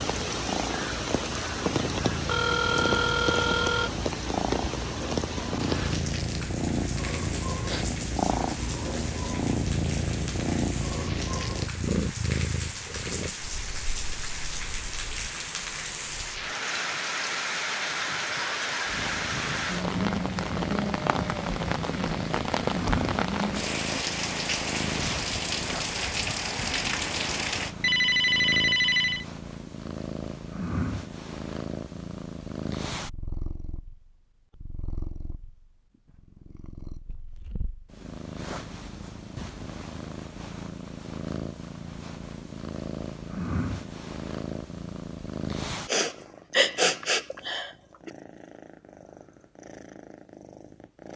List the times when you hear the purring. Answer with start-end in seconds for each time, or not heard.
0.0-15.3, 18.9-51.1.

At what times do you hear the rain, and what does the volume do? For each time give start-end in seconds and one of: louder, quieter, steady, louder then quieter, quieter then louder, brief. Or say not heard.
0.0-27.8 quieter then louder.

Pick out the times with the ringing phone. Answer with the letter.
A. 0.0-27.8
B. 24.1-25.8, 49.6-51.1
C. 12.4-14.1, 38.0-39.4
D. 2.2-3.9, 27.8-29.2
D.